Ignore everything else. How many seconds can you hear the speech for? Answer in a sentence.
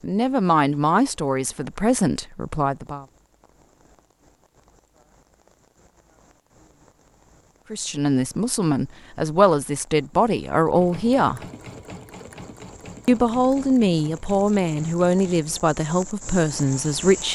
You can hear the speech for 11 seconds altogether.